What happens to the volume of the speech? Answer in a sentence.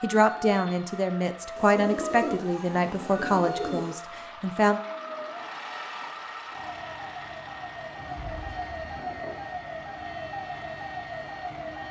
The loudness of the speech goes down.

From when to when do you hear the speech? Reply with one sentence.
The speech can be heard from 0.0 to 4.8 s.